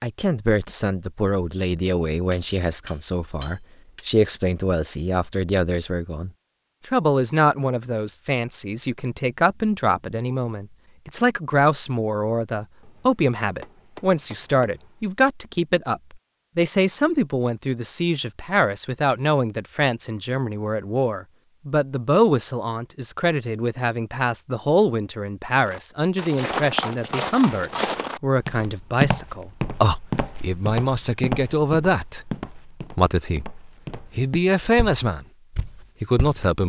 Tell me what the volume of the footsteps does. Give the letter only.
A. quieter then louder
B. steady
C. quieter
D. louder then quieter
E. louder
C.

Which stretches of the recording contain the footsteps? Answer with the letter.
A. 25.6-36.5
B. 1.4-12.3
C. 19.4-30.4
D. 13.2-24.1
A.